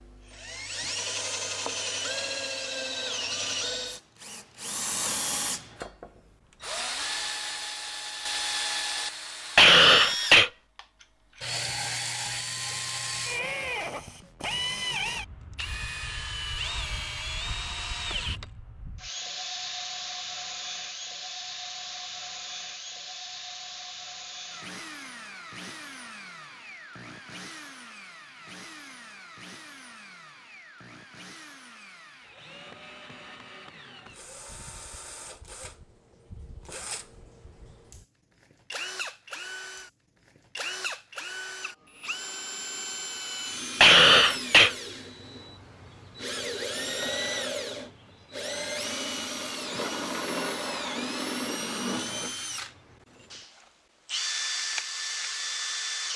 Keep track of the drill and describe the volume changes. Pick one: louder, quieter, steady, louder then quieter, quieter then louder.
quieter then louder.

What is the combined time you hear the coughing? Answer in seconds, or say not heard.
2 s.